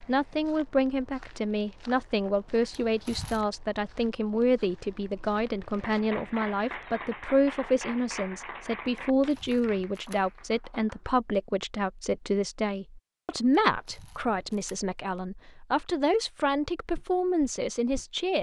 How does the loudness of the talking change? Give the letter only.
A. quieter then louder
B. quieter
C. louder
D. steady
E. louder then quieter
D.